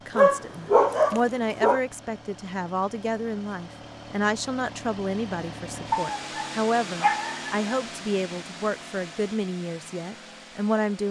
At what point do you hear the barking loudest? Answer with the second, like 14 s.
1 s.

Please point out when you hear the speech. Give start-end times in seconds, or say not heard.
0.1-11.0.